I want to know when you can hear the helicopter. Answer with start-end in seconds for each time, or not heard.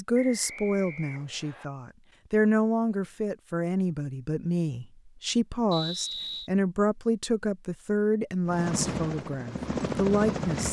8.4-10.6.